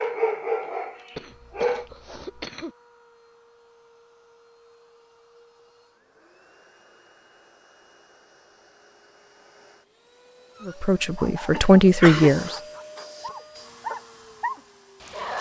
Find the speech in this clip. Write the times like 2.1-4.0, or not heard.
10.7-12.6.